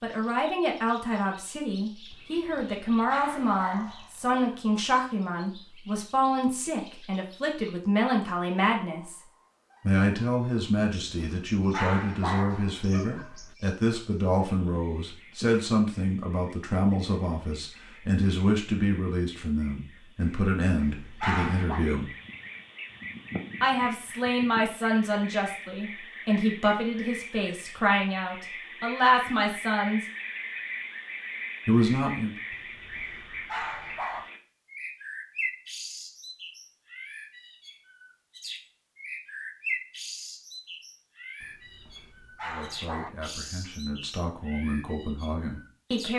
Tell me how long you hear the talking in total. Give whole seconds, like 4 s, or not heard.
32 s.